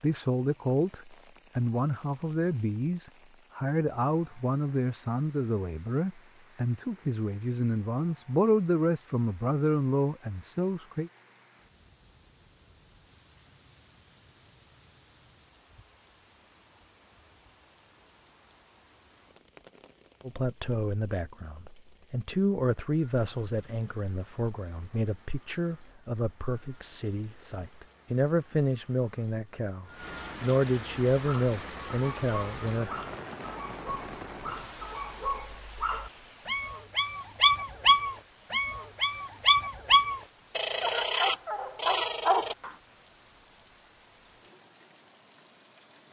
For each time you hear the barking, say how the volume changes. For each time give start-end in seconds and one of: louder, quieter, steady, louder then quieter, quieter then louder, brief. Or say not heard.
31.2-42.7 louder.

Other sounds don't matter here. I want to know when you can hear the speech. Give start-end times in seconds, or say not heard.
0.0-11.1, 20.2-33.0.